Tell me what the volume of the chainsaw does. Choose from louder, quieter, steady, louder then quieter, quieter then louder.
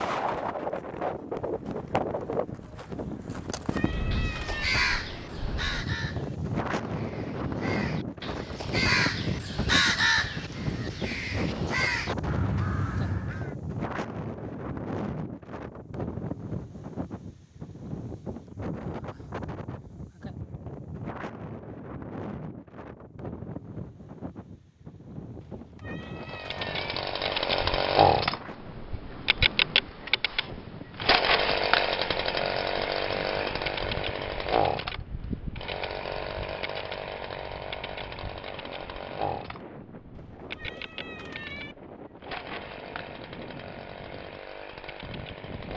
quieter.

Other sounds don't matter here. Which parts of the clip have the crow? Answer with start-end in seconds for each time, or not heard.
4.1-13.5.